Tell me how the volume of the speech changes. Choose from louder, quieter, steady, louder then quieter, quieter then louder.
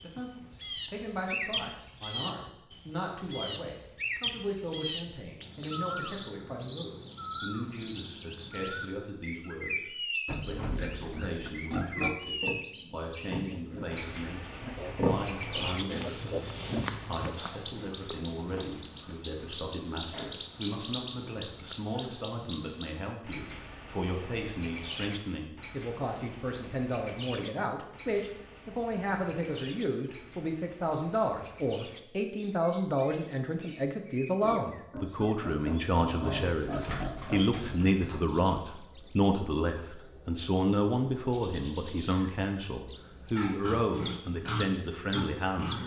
louder.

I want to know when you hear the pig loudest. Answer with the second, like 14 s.
15 s.